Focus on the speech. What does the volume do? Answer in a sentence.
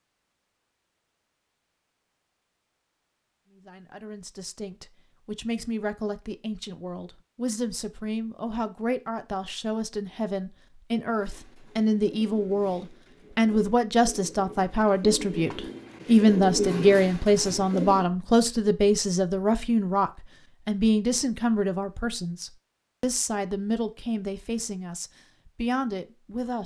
The loudness of the speech goes up, then down.